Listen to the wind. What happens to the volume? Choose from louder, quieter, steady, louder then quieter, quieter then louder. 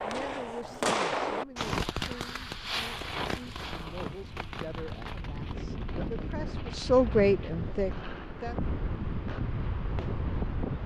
louder.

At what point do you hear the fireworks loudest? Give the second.
1 s.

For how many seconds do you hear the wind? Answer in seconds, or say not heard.
11 s.